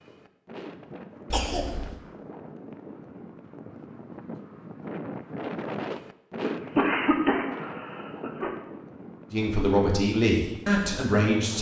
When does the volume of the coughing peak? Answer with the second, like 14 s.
7 s.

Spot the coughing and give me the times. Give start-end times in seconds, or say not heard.
1.3-1.9, 6.4-8.5.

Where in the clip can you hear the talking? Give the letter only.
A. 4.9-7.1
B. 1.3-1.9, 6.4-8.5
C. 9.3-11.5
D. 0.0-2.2
C.